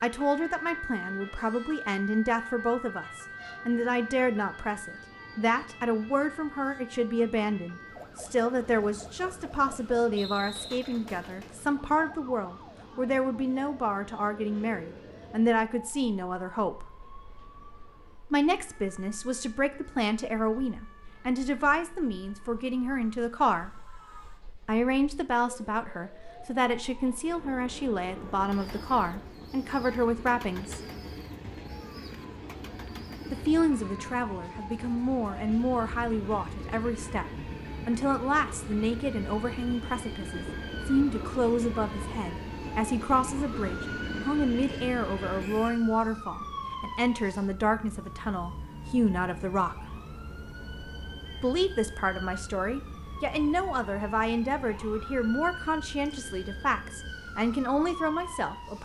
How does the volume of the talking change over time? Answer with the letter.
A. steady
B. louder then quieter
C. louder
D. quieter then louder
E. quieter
A.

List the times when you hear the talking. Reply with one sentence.
The talking can be heard from 0.0 to 16.9 s, from 18.3 to 23.7 s, from 24.6 to 30.8 s, from 33.3 to 50.0 s and from 51.4 to 58.8 s.